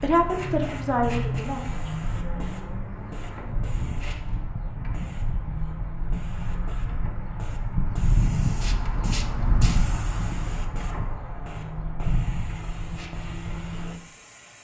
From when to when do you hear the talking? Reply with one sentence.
You can hear the talking from 0.0 to 2.5 s.